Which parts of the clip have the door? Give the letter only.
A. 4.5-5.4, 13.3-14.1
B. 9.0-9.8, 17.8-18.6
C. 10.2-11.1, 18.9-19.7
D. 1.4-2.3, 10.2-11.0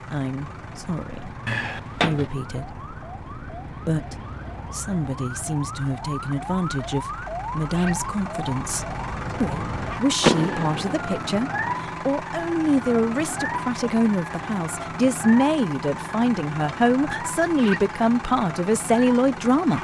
D.